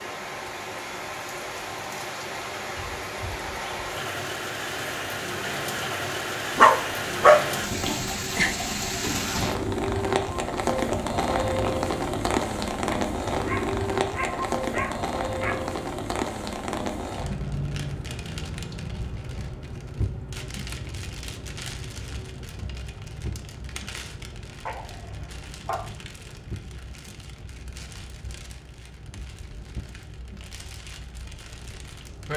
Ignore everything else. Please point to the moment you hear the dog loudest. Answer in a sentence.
The volume of the dog peaks at 7 seconds.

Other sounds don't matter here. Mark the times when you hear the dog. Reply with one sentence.
You can hear the dog from 6.5 to 8.6 s, from 12.9 to 15.7 s and from 24.6 to 25.8 s.